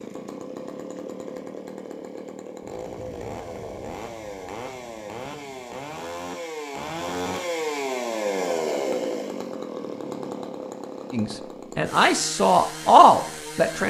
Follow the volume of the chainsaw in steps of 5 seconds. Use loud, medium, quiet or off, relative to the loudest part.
medium, loud, medium.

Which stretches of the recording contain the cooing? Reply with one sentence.
The cooing can't be heard in this clip.